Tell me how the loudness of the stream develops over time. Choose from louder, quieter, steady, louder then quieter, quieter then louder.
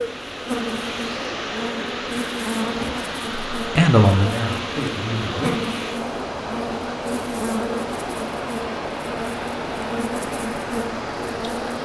steady.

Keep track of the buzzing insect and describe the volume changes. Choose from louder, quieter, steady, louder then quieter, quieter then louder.
steady.